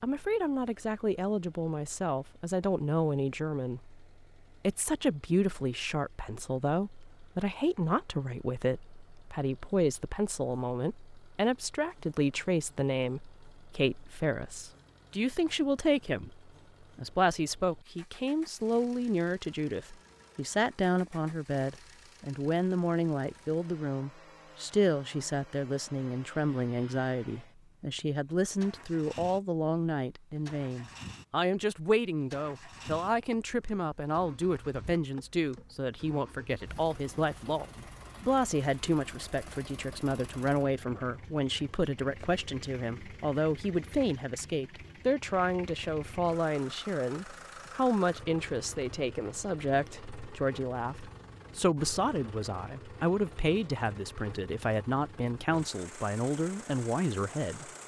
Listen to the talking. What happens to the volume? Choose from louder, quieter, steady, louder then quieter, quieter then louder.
steady.